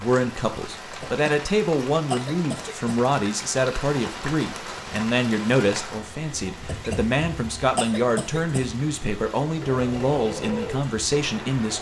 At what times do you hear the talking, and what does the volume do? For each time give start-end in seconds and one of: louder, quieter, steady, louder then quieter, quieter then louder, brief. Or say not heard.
0.0-11.7 steady.